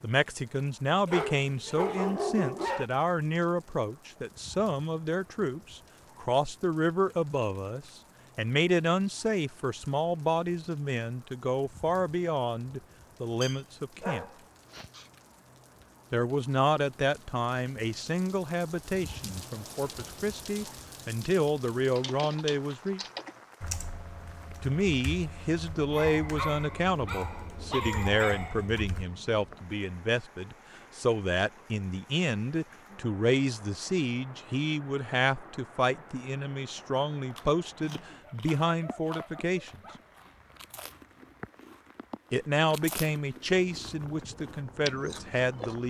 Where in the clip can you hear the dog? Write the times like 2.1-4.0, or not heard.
1.1-2.9, 13.4-15.1, 25.9-28.9, 38.2-40.1.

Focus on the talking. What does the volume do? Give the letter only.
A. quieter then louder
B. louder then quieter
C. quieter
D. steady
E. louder
D.